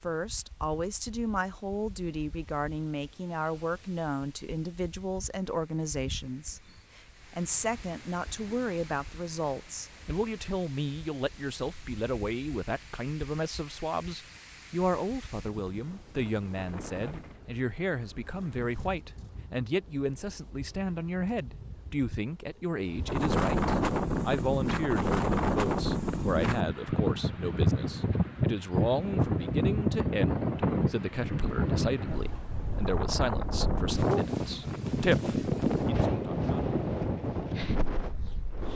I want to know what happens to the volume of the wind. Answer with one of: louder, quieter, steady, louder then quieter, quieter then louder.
louder.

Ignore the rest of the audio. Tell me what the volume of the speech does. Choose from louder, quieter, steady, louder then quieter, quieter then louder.
steady.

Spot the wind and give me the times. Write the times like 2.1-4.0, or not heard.
0.0-38.7.